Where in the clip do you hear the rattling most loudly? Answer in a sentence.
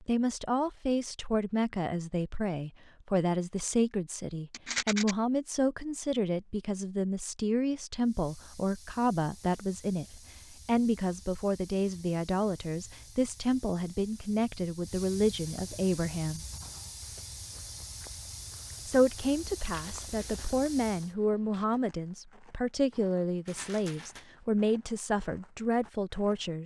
The loudest moment of the rattling is at 5 seconds.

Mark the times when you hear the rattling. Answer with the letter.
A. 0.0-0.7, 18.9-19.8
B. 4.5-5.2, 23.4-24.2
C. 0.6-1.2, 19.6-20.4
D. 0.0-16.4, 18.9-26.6
B.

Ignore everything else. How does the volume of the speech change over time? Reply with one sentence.
The loudness of the speech stays about the same.